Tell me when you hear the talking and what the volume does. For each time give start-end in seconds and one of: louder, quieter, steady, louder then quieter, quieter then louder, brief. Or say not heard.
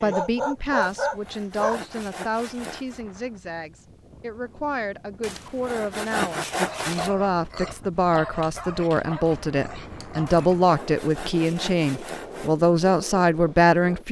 0.0-14.0 louder.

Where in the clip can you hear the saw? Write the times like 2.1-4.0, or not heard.
0.8-3.0, 5.2-7.1, 10.2-12.6.